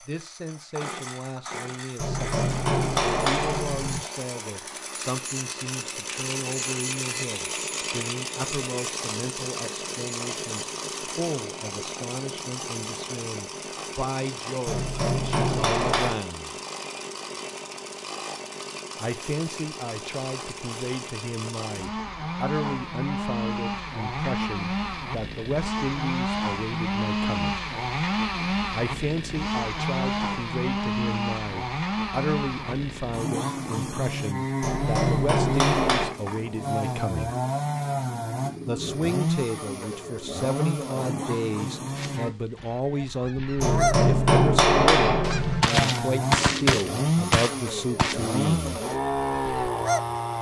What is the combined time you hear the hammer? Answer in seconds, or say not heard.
7 s.